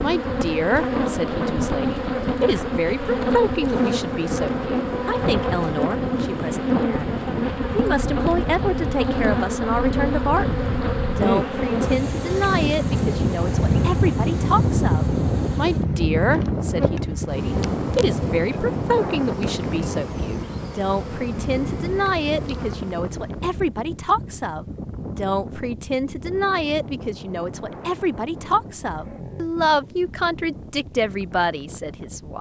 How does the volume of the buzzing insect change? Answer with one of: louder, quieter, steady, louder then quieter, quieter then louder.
quieter.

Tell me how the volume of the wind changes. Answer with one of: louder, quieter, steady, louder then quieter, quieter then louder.
louder then quieter.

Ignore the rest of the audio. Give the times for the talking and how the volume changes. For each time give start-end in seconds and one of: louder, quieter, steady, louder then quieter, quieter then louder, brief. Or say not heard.
0.0-32.3 steady.